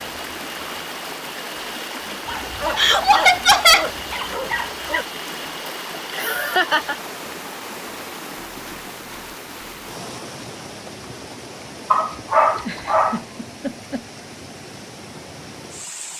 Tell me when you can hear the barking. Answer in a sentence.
The barking can be heard from 2.2 to 5.0 s and from 11.9 to 13.2 s.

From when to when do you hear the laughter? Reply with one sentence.
The laughter can be heard from 2.8 to 3.9 s, from 5.9 to 7.0 s and from 12.6 to 14.1 s.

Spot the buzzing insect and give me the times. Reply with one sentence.
The buzzing insect can't be heard in this clip.